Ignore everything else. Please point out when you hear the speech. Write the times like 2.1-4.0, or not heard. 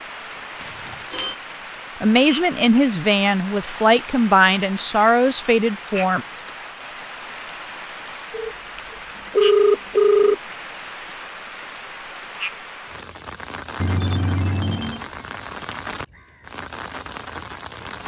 2.0-6.2.